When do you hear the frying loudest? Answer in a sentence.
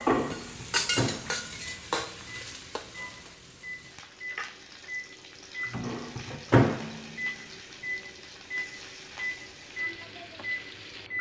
The volume of the frying peaks at 1 second.